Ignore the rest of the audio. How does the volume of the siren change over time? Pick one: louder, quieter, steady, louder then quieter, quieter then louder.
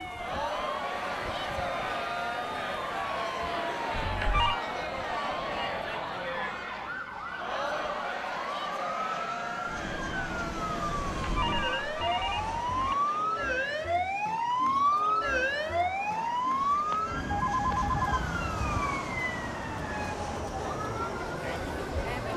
louder then quieter.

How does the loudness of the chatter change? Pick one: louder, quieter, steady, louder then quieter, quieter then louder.
quieter then louder.